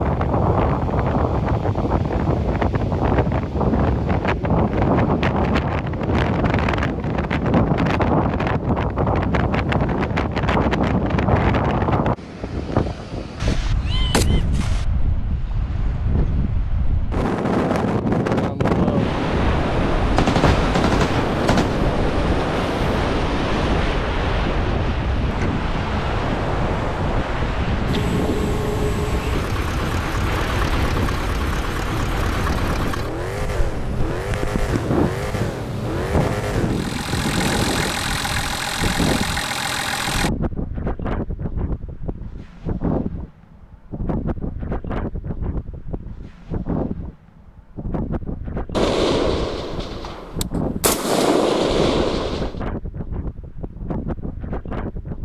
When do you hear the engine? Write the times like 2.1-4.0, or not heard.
27.9-40.3.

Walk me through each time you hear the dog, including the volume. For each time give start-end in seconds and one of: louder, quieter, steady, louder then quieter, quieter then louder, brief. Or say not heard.
not heard.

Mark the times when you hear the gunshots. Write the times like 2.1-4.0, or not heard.
13.4-14.8, 20.1-21.8, 48.7-52.6.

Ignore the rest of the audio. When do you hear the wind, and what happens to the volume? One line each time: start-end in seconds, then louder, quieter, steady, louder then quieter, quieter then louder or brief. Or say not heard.
0.0-55.1 quieter.